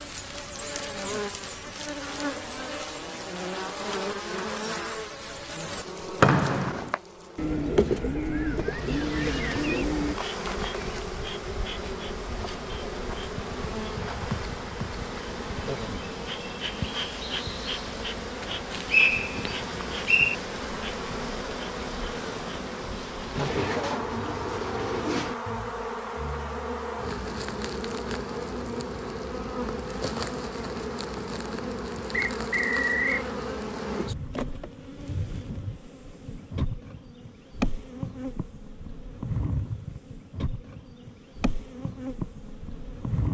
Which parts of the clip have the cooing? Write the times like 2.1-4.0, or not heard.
7.3-10.2, 23.4-25.4.